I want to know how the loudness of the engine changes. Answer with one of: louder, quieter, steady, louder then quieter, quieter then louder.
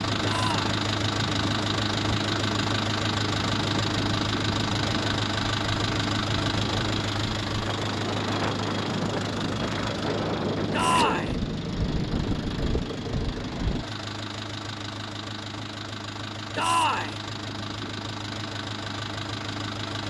quieter.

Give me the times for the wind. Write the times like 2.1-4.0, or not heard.
0.0-13.8.